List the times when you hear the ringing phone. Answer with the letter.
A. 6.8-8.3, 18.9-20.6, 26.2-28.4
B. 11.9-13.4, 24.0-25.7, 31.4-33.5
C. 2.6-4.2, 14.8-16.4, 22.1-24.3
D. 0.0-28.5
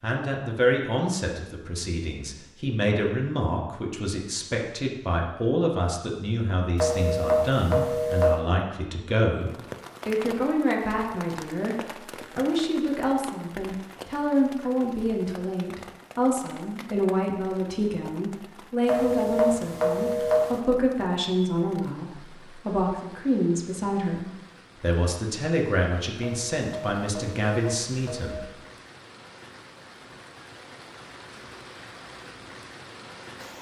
A.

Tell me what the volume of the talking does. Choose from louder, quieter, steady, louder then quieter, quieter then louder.
steady.